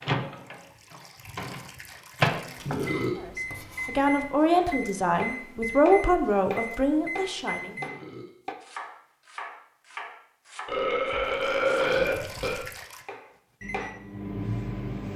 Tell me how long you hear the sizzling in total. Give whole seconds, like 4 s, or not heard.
not heard.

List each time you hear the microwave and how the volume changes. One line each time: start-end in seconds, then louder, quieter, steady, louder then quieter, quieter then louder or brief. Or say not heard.
0.0-8.0 louder then quieter
13.6-15.1 brief.